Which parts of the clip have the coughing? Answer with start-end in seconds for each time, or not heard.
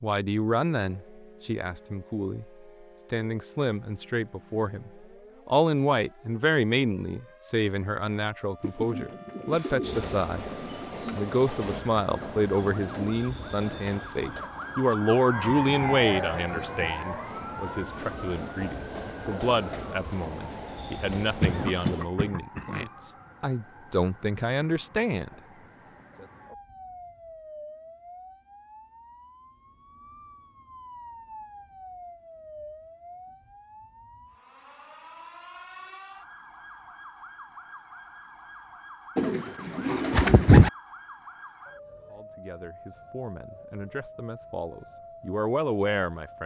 21.4-22.9.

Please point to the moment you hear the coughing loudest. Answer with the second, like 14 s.
22 s.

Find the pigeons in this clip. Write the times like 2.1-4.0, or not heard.
8.6-11.2, 39.1-40.7.